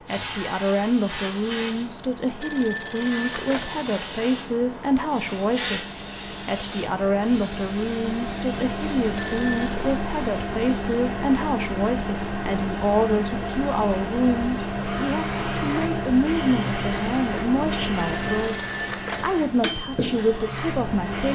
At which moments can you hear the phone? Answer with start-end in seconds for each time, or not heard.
2.4-3.9, 9.2-9.8, 17.9-19.4.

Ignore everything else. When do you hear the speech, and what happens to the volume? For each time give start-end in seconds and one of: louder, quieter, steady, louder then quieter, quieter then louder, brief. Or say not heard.
0.1-21.3 steady.